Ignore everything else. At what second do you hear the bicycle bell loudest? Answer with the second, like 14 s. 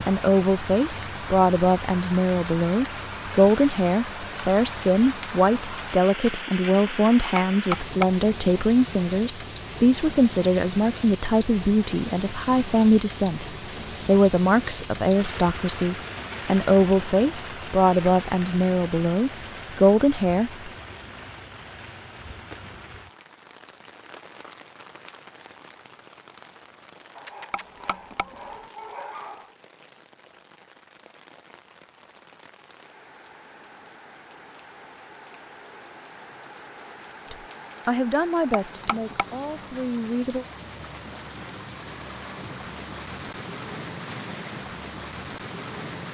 8 s.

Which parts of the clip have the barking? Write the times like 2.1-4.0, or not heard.
27.1-29.6.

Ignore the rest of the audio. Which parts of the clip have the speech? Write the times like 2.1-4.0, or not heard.
0.1-20.7, 37.3-40.5.